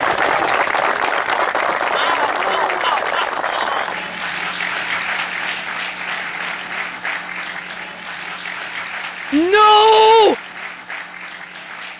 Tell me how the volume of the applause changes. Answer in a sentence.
The volume of the applause goes down.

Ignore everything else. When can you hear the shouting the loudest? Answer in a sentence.
The volume of the shouting peaks at 10 seconds.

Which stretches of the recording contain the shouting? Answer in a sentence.
You can hear the shouting from 1.9 to 3.9 s and from 9.3 to 10.3 s.